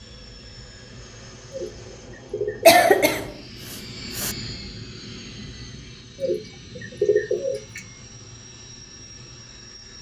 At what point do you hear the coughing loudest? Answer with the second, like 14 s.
3 s.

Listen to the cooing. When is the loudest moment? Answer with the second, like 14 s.
7 s.